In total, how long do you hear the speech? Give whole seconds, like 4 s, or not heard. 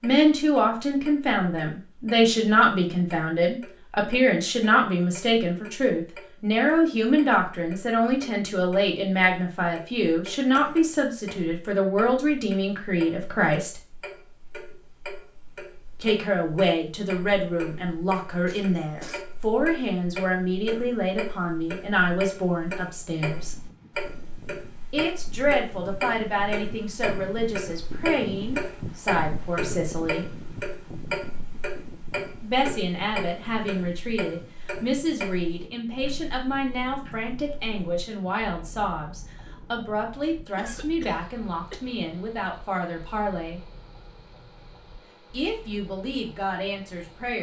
40 s.